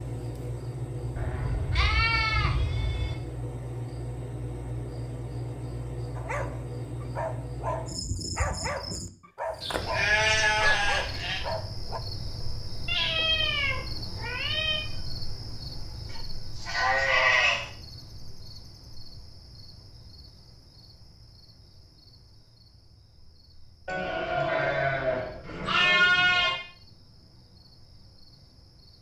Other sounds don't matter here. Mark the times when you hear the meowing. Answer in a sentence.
You can hear the meowing from 12.8 to 14.8 s.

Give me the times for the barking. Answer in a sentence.
You can hear the barking from 6.2 to 12.0 s.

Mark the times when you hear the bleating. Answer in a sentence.
You can hear the bleating from 1.1 to 3.1 s, from 9.6 to 11.4 s, from 16.1 to 17.7 s and from 23.9 to 26.6 s.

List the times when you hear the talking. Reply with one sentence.
You can't hear the talking here.